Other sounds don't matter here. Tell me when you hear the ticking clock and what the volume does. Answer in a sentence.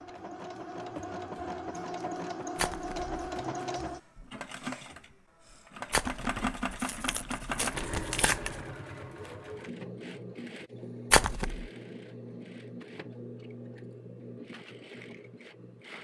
You can't hear the ticking clock here.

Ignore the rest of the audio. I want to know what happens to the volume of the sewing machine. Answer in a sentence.
The volume of the sewing machine goes down.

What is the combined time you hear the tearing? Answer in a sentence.
The tearing can be heard for 4 seconds in total.